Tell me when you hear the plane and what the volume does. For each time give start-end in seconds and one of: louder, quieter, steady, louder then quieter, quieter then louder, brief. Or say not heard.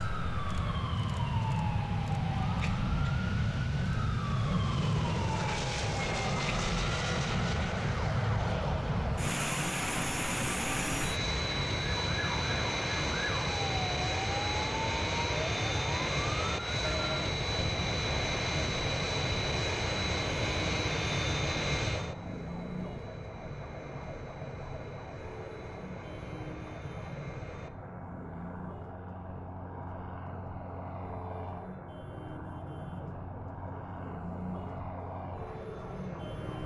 0.0-36.6 quieter.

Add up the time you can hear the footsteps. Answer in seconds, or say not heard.
not heard.